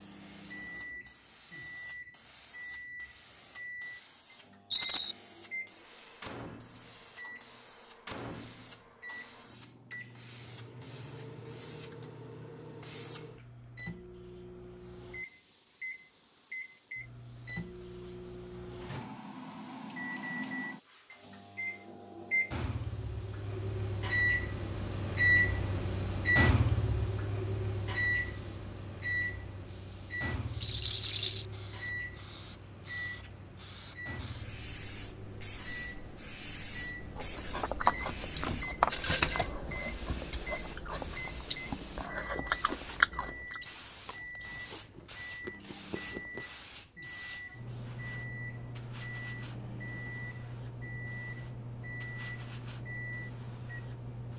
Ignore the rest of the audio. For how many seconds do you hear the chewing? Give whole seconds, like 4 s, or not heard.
9 s.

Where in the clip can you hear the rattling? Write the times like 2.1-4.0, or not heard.
4.7-5.2, 30.6-31.4, 38.9-39.5.